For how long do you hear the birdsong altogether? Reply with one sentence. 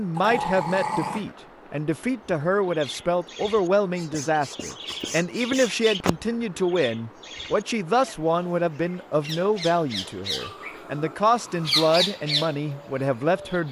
You can hear the birdsong for 11 seconds altogether.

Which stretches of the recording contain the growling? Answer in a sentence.
The growling can be heard from 0.1 to 1.3 s and from 10.3 to 12.1 s.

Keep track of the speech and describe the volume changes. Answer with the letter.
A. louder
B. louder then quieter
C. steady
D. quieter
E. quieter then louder
C.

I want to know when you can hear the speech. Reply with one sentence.
The speech can be heard from 0.0 to 13.6 s.